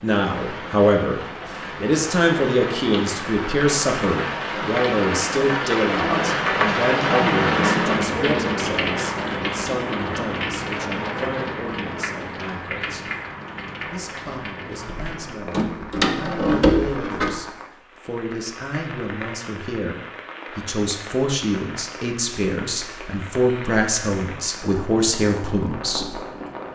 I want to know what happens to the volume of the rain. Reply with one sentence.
The loudness of the rain goes up, then down.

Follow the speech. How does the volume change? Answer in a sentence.
The loudness of the speech goes down, then up.